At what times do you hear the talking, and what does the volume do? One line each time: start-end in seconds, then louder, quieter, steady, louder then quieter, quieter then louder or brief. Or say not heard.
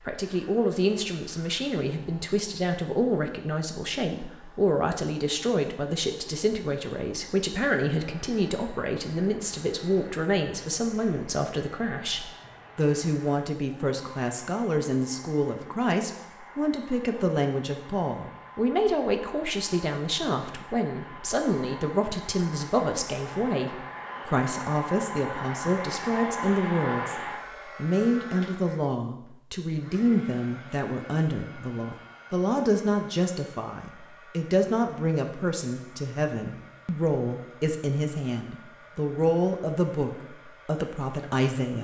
0.1-41.7 steady.